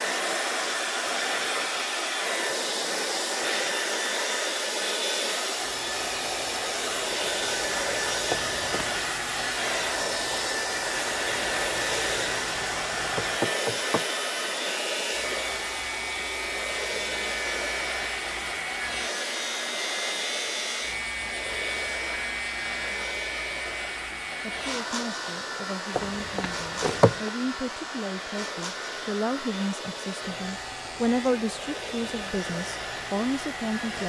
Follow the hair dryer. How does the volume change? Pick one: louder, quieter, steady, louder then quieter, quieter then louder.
quieter.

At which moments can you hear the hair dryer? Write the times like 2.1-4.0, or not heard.
0.0-34.0.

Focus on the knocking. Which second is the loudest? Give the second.
27 s.